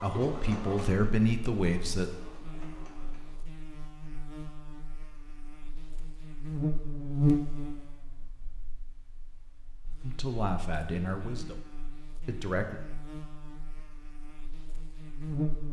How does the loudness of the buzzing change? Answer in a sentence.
The volume of the buzzing goes up, then down.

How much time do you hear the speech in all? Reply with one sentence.
You can hear the speech for 4 seconds altogether.